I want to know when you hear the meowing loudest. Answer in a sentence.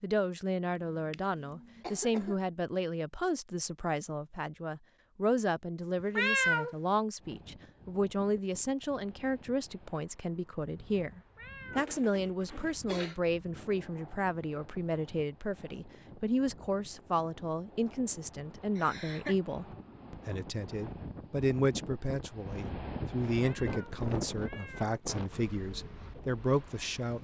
The volume of the meowing peaks at 6 seconds.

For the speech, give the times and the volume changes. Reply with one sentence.
The speech can be heard from 0.0 to 27.1 s, at a steady volume.